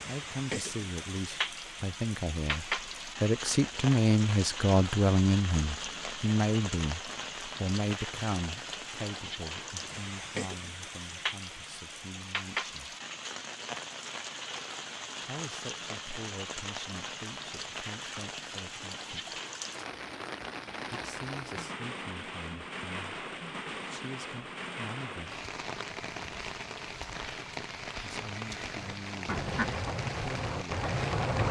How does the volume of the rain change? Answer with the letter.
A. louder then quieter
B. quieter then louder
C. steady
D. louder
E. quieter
C.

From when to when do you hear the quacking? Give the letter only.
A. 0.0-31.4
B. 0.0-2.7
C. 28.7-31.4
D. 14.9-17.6
C.